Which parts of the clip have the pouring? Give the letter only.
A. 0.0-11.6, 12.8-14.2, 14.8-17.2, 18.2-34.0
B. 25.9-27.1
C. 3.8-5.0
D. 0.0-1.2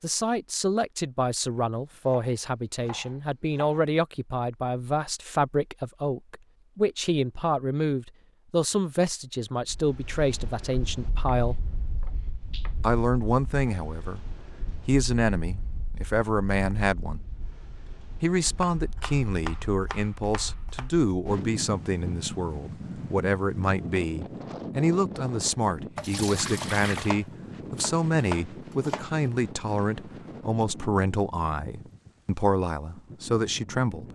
B.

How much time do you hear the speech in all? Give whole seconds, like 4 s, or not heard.
31 s.